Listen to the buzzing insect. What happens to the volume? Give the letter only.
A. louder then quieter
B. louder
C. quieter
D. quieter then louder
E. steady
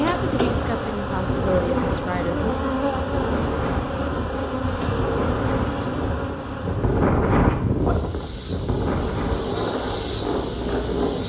D.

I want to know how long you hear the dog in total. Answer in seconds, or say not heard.
not heard.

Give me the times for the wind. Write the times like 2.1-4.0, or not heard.
0.1-11.2.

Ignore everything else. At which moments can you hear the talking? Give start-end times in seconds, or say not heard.
0.0-2.5.